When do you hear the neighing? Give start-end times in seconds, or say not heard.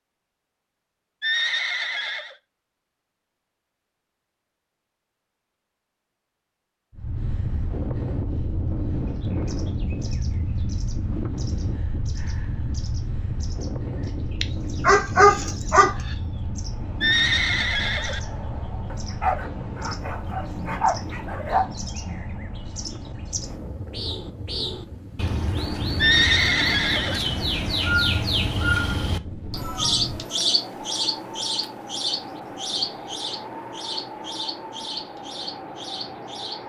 1.2-2.4, 17.0-18.2, 25.9-27.2.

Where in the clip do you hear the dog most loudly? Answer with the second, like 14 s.
15 s.